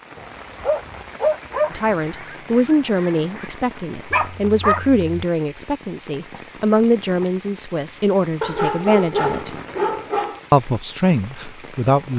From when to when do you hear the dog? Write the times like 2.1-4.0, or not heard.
0.1-1.8, 4.1-5.1, 8.4-10.4.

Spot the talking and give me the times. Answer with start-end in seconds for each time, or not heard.
1.7-9.6, 10.5-12.1.